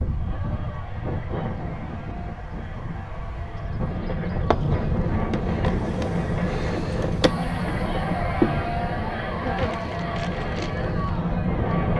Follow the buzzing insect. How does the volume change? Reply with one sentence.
The volume of the buzzing insect goes up, then down.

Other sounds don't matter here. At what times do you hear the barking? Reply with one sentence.
The barking can't be heard in this clip.